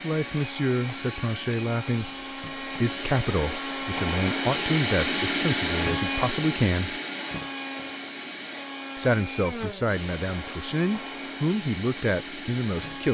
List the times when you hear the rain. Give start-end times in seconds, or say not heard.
not heard.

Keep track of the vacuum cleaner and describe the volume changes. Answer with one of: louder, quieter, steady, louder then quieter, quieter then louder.
louder then quieter.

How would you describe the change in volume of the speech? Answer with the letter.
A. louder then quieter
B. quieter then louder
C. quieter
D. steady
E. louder
D.